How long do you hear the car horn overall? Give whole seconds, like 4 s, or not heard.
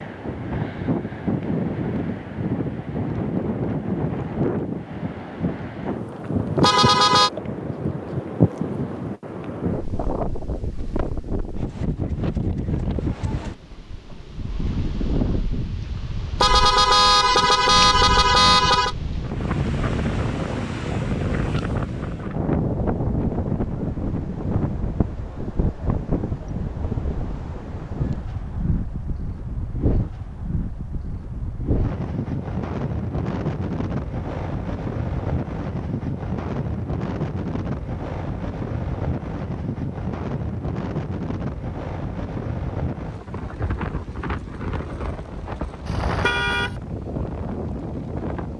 4 s.